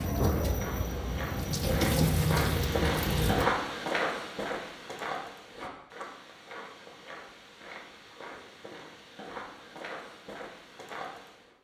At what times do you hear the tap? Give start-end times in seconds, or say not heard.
0.0-3.5.